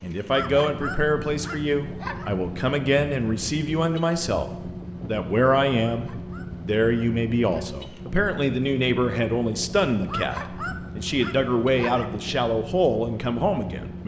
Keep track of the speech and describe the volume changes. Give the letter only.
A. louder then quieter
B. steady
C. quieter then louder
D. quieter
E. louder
B.